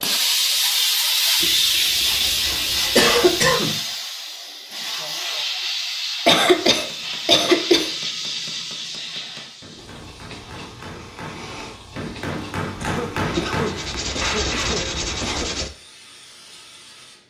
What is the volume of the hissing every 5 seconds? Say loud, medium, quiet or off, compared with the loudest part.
loud, medium, quiet, quiet.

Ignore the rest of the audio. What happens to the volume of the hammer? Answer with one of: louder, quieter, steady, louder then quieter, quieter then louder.
louder.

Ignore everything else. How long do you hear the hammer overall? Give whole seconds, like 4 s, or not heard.
8 s.